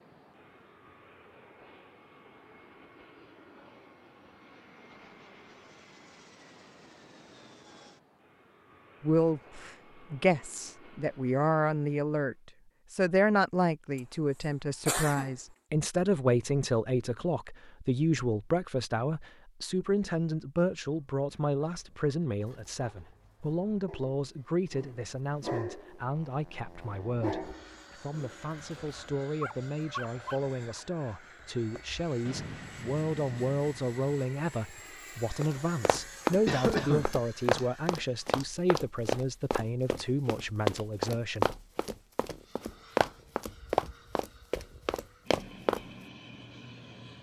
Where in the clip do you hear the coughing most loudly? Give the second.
37 s.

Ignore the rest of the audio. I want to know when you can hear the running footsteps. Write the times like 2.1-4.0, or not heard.
35.4-45.9.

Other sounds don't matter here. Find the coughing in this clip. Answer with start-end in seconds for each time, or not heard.
14.8-15.3, 36.5-37.1.